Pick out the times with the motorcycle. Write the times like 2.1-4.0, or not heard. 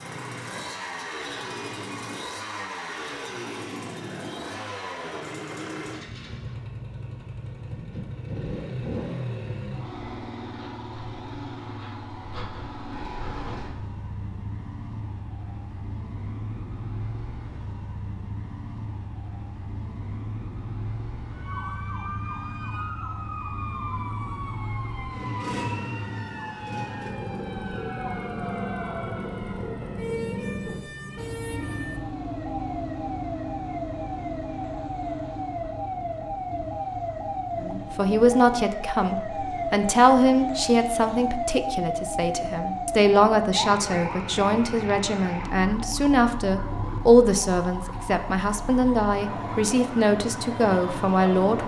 0.0-51.6.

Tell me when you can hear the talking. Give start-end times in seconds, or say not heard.
37.6-51.6.